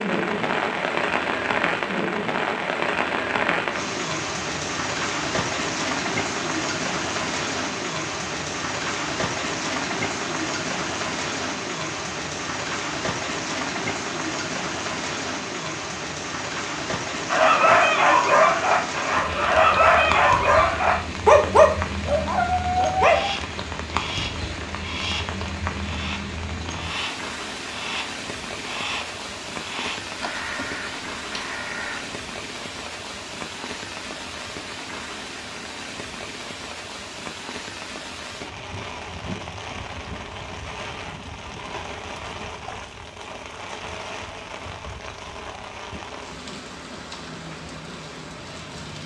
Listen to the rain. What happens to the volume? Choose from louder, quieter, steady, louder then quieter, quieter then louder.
quieter.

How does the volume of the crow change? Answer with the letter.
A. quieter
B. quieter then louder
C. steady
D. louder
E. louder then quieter
C.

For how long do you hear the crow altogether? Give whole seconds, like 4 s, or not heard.
9 s.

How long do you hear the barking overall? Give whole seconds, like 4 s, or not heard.
6 s.